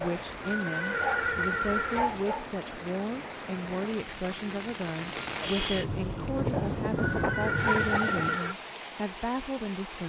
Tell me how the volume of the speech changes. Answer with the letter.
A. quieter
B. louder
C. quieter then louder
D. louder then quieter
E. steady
E.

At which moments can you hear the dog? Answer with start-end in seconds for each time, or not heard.
0.9-2.5, 6.3-8.4.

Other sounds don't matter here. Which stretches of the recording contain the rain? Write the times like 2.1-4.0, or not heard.
0.0-10.0.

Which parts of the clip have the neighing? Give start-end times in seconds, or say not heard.
0.0-2.0, 6.5-8.6.